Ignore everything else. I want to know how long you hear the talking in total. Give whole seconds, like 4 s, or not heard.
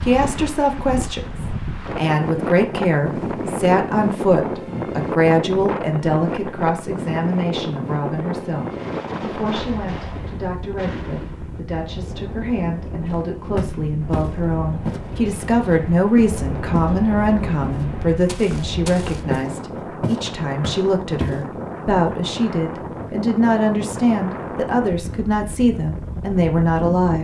27 s.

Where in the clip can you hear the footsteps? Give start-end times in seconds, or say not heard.
13.1-16.9, 17.6-21.4.